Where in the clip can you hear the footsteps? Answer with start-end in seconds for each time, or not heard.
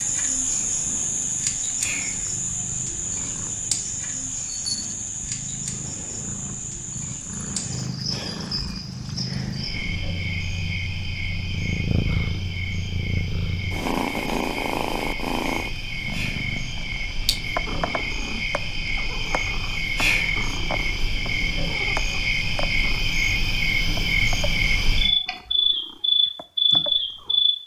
not heard.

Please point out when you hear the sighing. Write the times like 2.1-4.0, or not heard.
1.8-2.3, 16.1-16.6, 19.9-20.5.